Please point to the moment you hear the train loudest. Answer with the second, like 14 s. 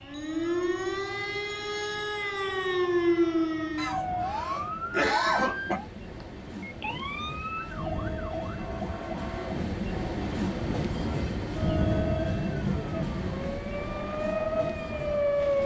12 s.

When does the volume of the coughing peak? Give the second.
5 s.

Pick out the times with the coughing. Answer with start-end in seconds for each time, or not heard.
3.8-5.8.